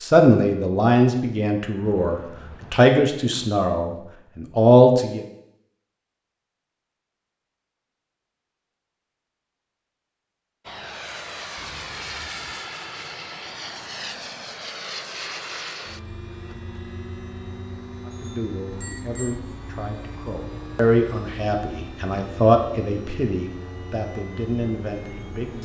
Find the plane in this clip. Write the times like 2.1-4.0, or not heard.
10.7-25.5.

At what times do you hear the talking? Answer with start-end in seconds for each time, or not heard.
0.0-5.2, 18.1-25.5.